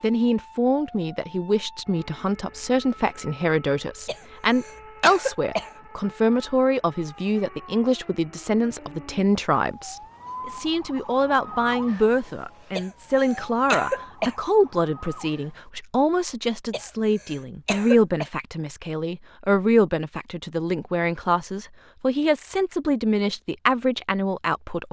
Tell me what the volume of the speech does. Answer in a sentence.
The volume of the speech stays about the same.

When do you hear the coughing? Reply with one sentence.
The coughing can be heard from 4.0 to 5.7 s, from 12.8 to 14.3 s and from 16.7 to 18.2 s.